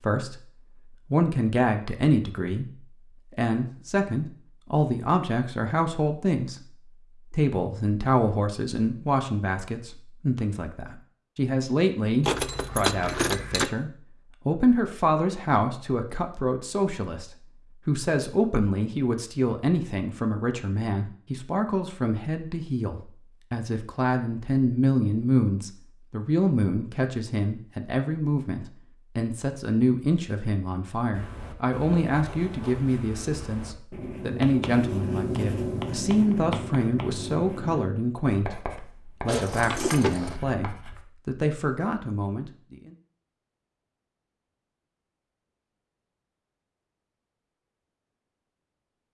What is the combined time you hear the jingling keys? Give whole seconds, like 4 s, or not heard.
3 s.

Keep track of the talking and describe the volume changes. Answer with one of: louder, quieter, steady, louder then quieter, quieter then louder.
steady.